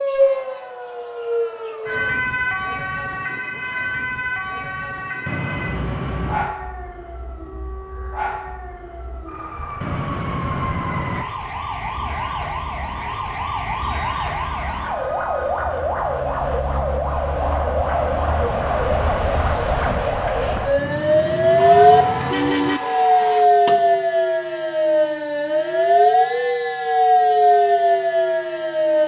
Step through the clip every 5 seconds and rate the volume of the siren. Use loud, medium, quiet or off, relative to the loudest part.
medium, quiet, medium, medium, loud, loud.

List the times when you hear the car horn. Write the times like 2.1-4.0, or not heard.
5.2-6.5, 9.8-11.2, 20.8-22.8.